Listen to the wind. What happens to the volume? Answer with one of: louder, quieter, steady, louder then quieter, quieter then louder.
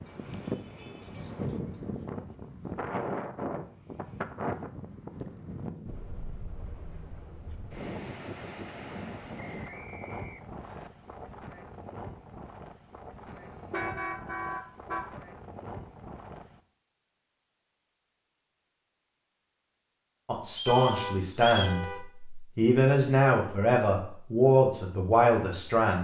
quieter.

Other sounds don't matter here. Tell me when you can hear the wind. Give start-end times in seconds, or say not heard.
0.0-16.6.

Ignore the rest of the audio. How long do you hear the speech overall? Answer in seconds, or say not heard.
6 s.